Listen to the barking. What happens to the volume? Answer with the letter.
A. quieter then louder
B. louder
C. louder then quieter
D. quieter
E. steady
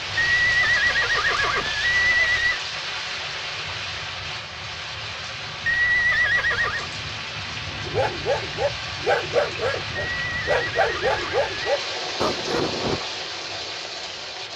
E.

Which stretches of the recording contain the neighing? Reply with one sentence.
The neighing can be heard from 0.1 to 2.6 s, from 5.7 to 6.9 s and from 10.0 to 11.6 s.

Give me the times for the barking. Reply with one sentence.
You can hear the barking from 7.8 to 13.0 s.